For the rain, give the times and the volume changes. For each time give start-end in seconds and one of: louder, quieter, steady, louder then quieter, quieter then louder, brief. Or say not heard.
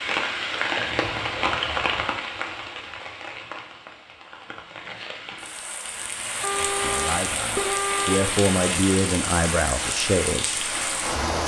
0.0-11.4 quieter then louder.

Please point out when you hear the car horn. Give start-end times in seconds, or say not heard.
0.8-1.9, 6.4-8.3.